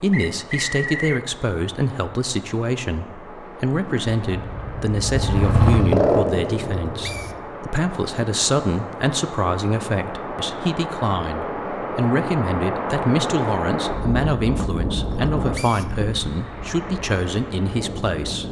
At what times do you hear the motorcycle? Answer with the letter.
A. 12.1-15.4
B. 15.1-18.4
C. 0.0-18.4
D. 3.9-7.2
D.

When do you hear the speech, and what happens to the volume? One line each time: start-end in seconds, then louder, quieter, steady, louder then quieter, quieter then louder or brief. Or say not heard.
0.0-18.4 steady.